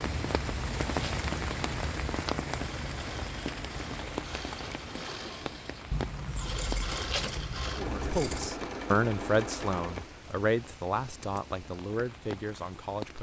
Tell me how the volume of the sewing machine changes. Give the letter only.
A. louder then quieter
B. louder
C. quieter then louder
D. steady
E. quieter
B.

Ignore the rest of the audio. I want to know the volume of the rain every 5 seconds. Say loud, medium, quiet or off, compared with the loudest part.
loud, medium, medium.